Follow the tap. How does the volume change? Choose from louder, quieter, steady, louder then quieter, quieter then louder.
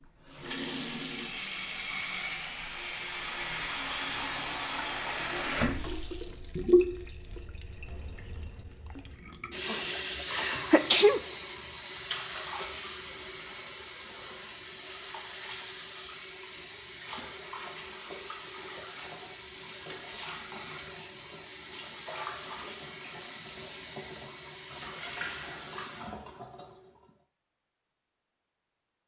quieter.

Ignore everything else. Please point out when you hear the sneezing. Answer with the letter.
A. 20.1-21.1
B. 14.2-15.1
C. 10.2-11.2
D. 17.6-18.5
C.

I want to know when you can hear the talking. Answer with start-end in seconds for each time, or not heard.
not heard.